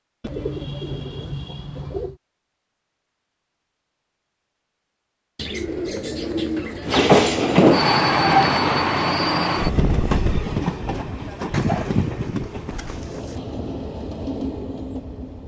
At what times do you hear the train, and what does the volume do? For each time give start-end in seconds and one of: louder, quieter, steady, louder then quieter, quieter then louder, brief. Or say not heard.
6.8-15.4 quieter.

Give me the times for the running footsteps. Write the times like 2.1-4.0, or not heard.
not heard.